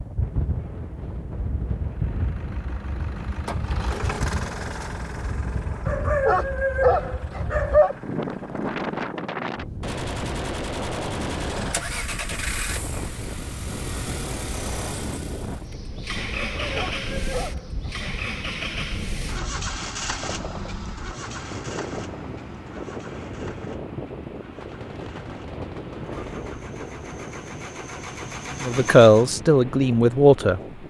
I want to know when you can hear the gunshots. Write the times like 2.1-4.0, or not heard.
9.8-11.7, 24.6-26.5.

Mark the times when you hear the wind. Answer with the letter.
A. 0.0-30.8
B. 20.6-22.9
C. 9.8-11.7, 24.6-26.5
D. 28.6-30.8
A.